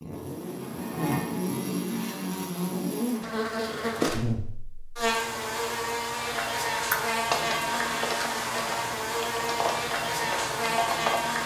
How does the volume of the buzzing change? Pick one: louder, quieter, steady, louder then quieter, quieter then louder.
steady.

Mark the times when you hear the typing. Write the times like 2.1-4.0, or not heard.
6.8-11.4.